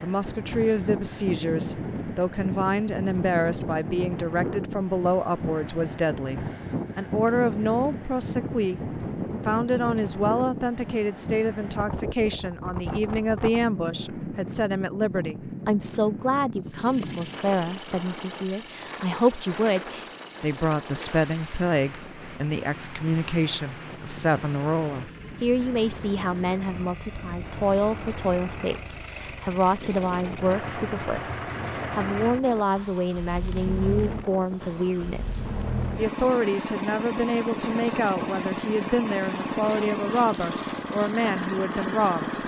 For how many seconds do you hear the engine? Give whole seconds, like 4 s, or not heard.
26 s.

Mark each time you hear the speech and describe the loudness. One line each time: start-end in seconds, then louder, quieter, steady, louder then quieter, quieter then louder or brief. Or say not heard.
0.0-42.4 steady.